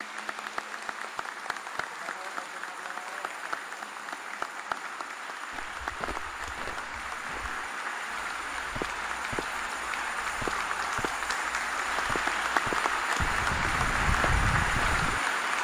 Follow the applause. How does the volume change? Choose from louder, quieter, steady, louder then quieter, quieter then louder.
louder.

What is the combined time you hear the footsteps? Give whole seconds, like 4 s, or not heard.
10 s.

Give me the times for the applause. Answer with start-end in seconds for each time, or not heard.
0.0-15.5.